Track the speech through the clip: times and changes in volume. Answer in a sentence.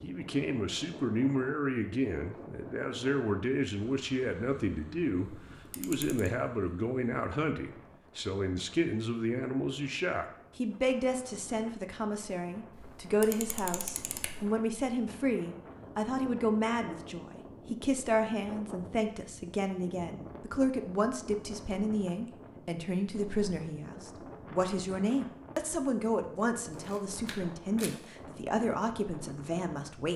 You can hear the speech from 0.0 to 30.1 s, at a steady volume.